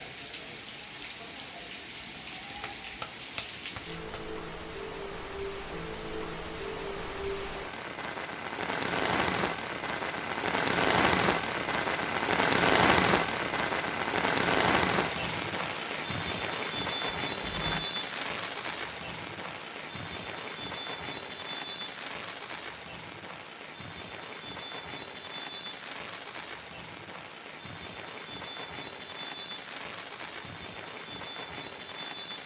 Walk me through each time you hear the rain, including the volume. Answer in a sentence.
The rain can be heard from 0.0 to 32.4 s, getting louder then quieter.